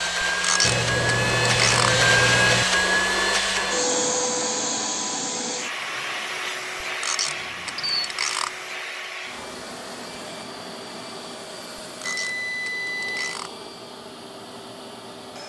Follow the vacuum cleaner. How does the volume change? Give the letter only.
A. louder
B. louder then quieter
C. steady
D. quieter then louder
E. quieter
E.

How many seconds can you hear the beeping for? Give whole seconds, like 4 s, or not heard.
4 s.